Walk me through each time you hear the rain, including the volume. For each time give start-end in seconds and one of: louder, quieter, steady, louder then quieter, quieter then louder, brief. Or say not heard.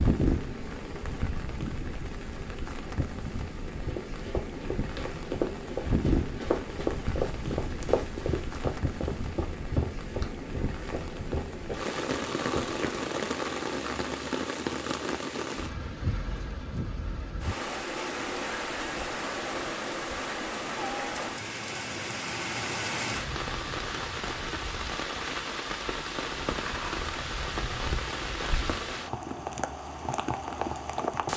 0.0-31.3 steady.